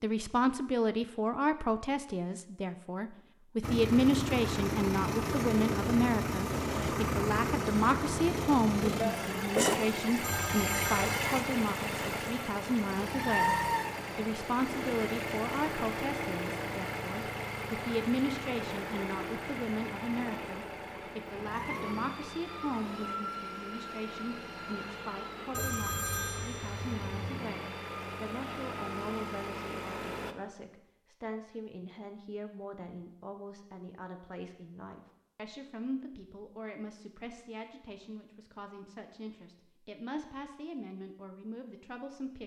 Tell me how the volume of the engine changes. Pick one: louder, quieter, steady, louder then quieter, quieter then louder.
quieter.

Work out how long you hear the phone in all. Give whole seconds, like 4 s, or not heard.
3 s.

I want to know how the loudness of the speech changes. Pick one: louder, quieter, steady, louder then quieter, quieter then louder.
quieter.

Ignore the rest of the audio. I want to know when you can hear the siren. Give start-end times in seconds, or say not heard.
not heard.